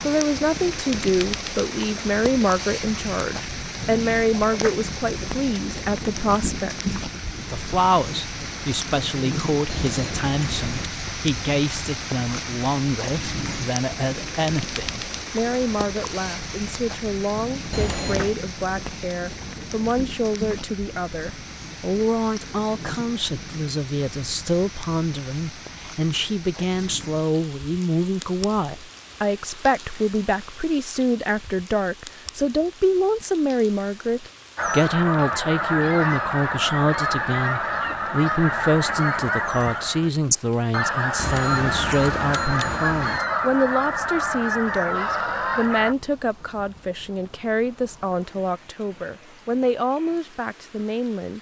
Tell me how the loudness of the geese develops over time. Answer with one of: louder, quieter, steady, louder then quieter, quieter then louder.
steady.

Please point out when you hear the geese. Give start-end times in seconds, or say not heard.
34.5-46.0.